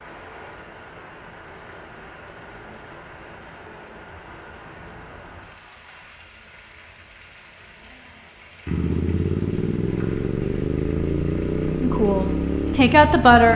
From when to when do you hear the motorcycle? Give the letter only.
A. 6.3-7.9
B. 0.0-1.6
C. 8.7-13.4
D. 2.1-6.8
C.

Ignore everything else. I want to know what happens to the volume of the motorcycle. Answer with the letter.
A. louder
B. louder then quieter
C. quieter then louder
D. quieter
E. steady
E.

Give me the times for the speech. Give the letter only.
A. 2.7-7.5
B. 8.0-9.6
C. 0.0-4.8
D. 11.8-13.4
D.